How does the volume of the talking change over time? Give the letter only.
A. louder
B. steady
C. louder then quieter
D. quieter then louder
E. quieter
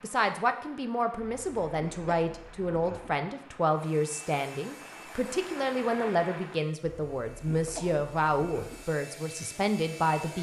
B.